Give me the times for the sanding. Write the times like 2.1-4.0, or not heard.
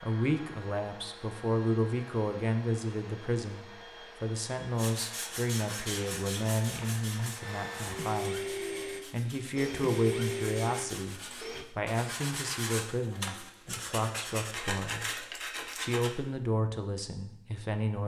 4.8-16.1.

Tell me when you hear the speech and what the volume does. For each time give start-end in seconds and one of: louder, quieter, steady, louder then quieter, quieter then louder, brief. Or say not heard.
0.0-18.0 steady.